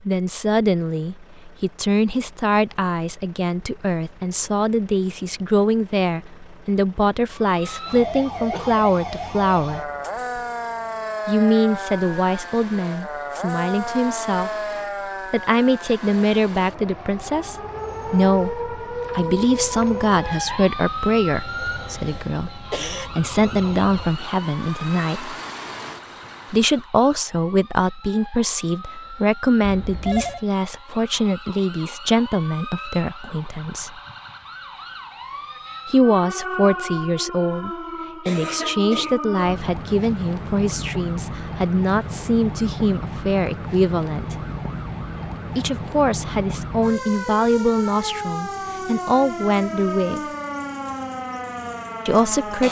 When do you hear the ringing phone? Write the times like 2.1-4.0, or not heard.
29.6-30.4.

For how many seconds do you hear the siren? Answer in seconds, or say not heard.
45 s.